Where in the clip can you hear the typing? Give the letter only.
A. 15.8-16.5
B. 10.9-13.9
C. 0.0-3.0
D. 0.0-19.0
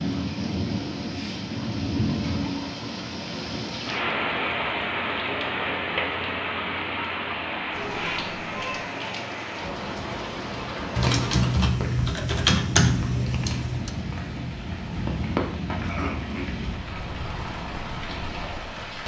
B.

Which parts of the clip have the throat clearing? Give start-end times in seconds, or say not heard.
15.8-16.5.